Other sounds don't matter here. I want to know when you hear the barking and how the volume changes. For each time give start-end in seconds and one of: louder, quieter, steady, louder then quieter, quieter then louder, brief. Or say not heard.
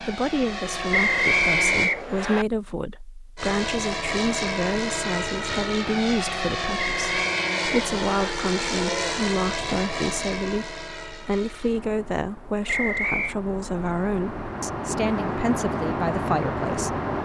not heard.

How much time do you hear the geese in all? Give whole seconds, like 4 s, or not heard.
not heard.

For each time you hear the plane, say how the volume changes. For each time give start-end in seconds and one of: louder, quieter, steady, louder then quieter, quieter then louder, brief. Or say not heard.
0.0-1.9 brief
3.4-17.2 quieter then louder.